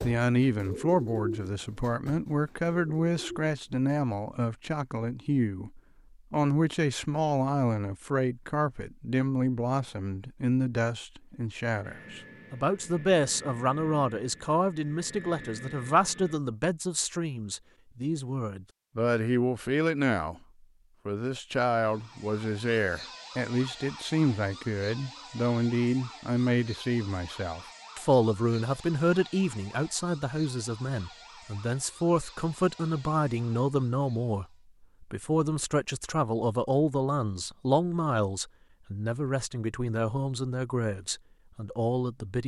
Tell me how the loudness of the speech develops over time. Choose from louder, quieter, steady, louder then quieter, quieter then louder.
steady.